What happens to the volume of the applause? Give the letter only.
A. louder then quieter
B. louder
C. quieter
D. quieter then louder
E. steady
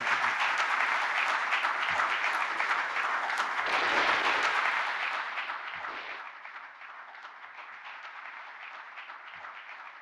C.